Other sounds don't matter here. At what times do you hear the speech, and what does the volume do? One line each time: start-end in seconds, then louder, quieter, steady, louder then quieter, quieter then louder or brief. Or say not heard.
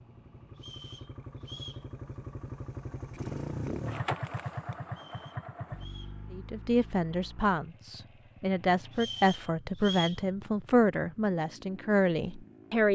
6.3-12.9 steady.